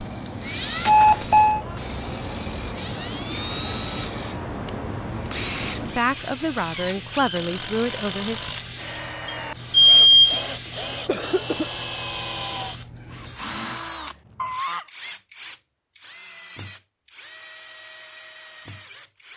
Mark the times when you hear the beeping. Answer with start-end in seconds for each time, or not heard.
0.8-1.6, 9.2-10.4, 14.3-14.8.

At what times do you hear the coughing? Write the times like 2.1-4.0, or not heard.
10.3-11.7.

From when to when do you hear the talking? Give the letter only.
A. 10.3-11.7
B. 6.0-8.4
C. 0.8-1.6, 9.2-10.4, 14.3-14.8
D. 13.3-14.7
B.